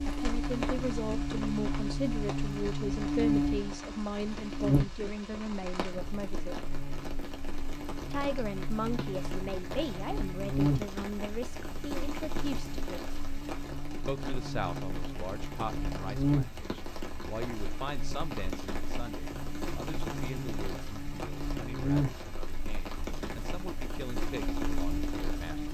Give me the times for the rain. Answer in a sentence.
The rain can be heard from 0.0 to 25.6 s.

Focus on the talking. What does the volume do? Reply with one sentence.
The volume of the talking goes down.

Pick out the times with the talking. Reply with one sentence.
The talking can be heard from 0.1 to 6.5 s, from 8.1 to 13.2 s and from 14.1 to 25.6 s.